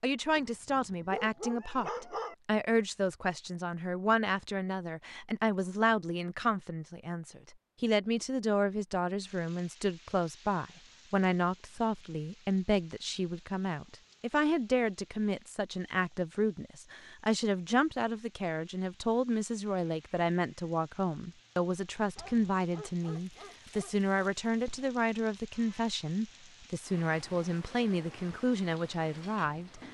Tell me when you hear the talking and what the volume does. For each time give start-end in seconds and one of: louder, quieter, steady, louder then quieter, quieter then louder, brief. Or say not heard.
0.0-29.8 steady.